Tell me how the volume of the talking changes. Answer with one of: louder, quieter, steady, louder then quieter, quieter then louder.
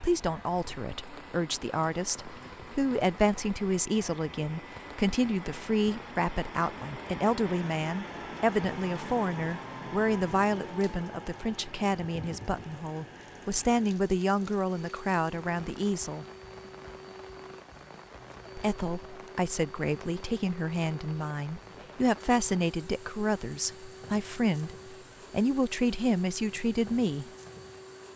steady.